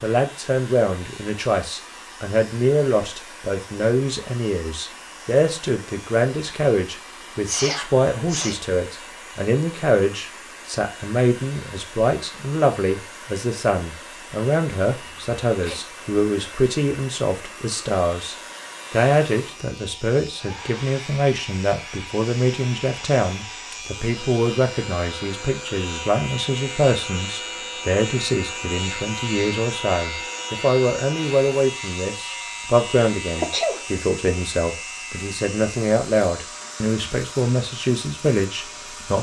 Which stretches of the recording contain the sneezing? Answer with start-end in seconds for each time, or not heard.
7.5-8.6, 15.0-15.9, 33.4-34.0.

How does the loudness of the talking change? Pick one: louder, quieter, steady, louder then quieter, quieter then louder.
steady.